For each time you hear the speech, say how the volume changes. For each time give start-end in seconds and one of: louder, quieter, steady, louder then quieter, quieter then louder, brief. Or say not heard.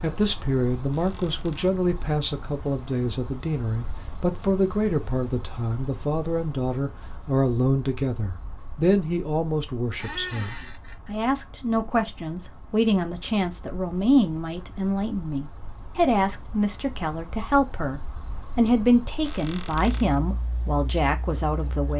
0.0-21.9 steady.